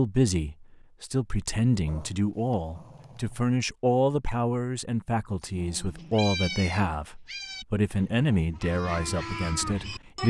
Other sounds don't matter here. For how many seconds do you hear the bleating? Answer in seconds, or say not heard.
4 s.